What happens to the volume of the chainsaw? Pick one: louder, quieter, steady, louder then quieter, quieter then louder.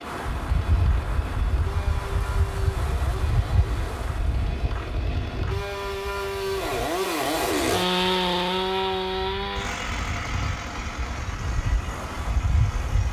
louder then quieter.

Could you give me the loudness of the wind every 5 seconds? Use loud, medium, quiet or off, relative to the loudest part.
loud, medium, loud.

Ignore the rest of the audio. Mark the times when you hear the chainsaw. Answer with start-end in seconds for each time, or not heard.
0.0-13.0.